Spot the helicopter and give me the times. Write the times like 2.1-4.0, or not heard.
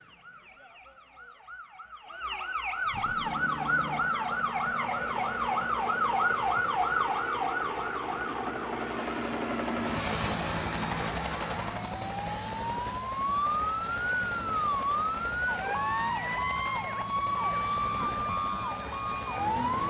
3.0-19.8.